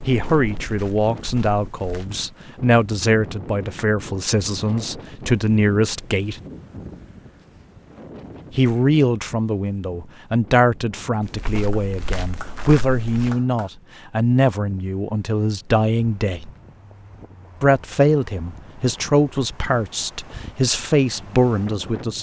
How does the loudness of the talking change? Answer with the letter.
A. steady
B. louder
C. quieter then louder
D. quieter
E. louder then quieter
A.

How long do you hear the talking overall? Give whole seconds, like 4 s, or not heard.
19 s.